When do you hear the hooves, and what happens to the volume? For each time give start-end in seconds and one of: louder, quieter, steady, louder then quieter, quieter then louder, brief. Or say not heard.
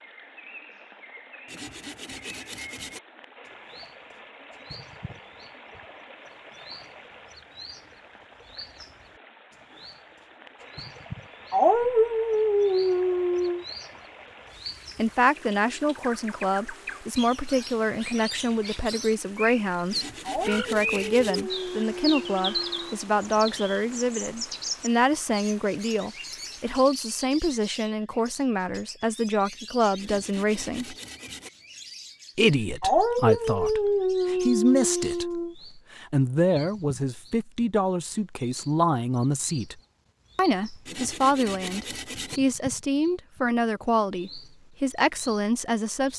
not heard.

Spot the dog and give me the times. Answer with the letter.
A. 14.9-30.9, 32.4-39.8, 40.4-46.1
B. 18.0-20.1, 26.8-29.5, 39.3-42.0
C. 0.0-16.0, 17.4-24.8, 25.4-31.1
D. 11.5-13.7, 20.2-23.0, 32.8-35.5
D.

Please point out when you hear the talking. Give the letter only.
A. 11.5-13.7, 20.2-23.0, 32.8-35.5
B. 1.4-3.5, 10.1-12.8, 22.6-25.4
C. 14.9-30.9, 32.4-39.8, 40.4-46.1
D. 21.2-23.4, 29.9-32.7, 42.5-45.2
C.